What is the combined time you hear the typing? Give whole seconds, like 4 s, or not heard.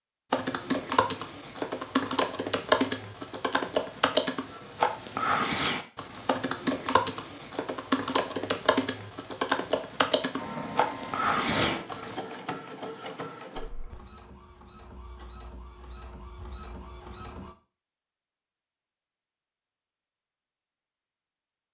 12 s.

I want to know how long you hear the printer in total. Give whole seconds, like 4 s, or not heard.
7 s.